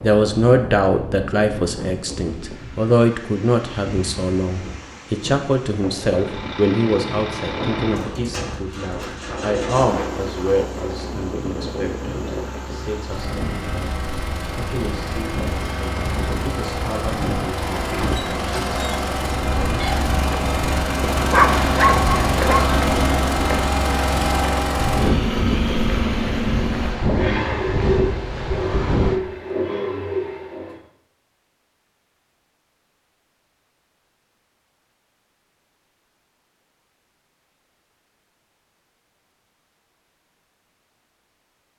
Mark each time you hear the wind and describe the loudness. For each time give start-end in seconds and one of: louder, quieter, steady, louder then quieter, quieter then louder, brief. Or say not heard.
0.0-29.2 louder.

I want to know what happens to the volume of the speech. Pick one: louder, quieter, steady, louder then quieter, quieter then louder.
quieter.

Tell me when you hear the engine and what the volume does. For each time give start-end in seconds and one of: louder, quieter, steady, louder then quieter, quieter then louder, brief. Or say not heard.
6.0-30.8 louder.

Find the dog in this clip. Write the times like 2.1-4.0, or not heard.
21.1-22.7.